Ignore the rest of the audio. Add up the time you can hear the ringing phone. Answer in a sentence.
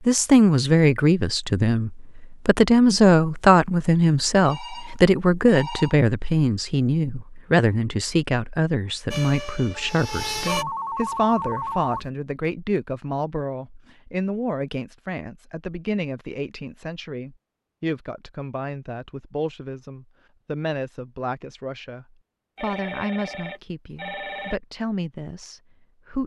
The ringing phone can be heard for 5 seconds in total.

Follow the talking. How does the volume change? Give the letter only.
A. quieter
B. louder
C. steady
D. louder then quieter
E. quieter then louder
A.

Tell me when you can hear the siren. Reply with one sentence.
The siren can be heard from 9.1 to 10.7 s.